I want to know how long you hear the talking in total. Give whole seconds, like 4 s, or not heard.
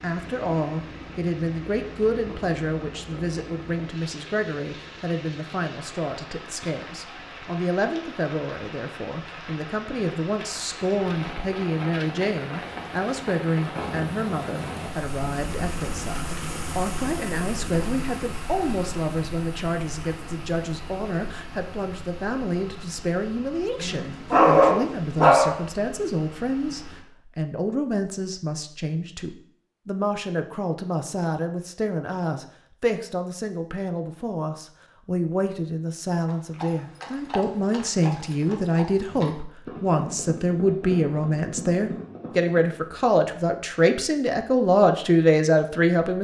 46 s.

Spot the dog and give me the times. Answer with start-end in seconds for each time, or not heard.
23.8-25.6.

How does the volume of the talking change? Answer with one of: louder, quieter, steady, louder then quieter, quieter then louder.
louder.